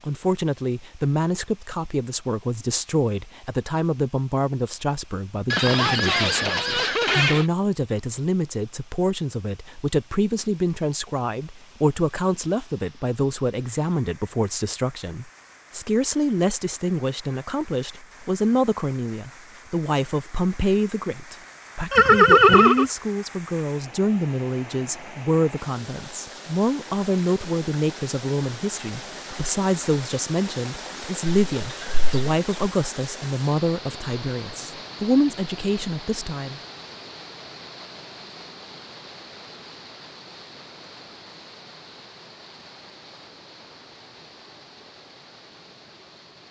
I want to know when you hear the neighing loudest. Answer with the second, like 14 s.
22 s.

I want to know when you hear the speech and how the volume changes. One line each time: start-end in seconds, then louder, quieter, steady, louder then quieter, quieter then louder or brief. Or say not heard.
0.0-36.6 steady.